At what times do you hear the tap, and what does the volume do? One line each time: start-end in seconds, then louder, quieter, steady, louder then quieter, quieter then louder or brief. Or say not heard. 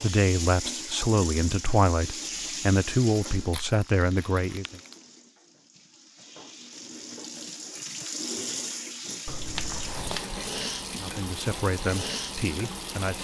0.0-13.1 quieter then louder.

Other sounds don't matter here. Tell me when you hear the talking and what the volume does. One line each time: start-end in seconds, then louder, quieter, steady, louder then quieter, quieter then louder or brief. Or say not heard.
0.0-4.8 steady
10.9-13.1 brief.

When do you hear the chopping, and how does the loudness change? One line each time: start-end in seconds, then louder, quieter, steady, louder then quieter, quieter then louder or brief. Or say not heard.
not heard.